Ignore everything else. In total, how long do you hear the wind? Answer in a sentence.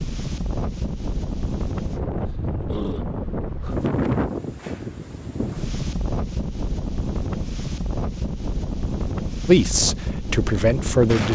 You can hear the wind for 11 seconds altogether.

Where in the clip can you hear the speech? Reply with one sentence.
The speech can be heard from 9.4 to 11.3 s.